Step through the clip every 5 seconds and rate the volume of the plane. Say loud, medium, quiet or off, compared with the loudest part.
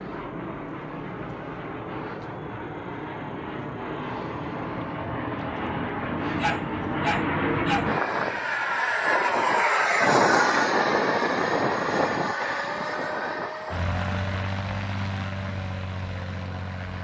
medium, loud, loud, medium.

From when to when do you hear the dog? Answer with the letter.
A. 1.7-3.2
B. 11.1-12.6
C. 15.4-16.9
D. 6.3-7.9
D.